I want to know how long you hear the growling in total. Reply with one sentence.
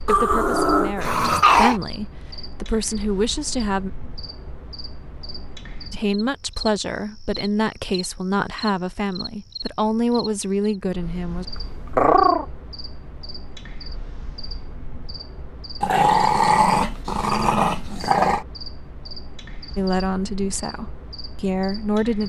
The growling can be heard for 5 seconds in total.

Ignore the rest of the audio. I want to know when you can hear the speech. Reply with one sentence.
The speech can be heard from 0.0 to 3.9 s, from 5.9 to 11.4 s and from 19.8 to 22.2 s.